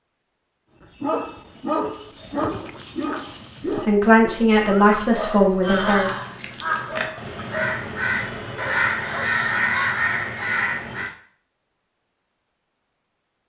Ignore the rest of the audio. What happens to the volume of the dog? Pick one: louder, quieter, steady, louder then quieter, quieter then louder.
quieter.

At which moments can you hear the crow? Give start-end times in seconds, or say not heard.
5.6-11.1.